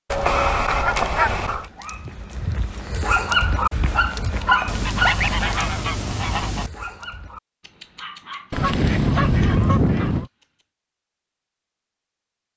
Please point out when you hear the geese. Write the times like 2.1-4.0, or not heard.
0.1-1.6, 4.7-6.7, 8.5-10.2.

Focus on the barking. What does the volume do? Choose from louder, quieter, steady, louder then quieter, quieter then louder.
louder then quieter.